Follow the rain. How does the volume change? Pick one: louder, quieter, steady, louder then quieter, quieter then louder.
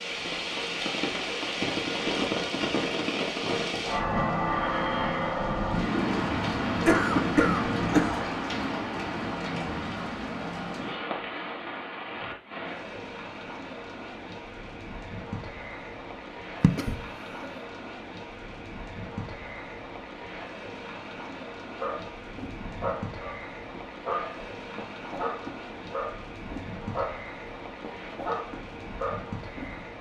quieter.